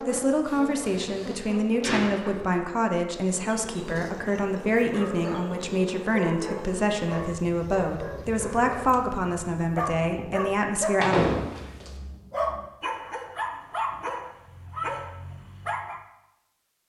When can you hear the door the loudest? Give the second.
11 s.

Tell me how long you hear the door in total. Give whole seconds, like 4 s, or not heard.
3 s.